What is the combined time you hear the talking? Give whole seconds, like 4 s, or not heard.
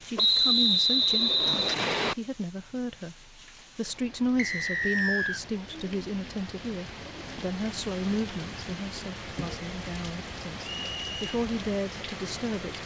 13 s.